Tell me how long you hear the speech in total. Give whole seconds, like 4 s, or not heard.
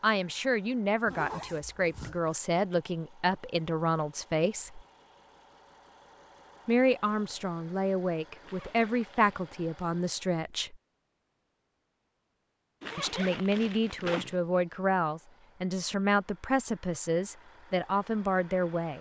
15 s.